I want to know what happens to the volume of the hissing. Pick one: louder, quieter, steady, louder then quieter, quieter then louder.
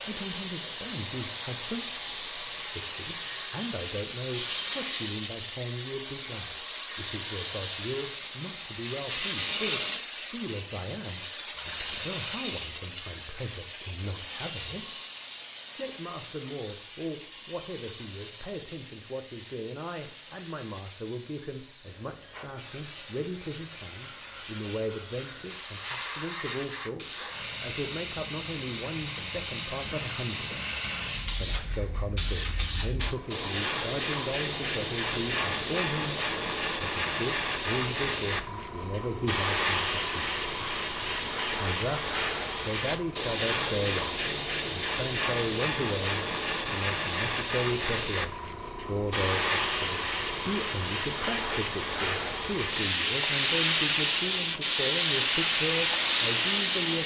quieter then louder.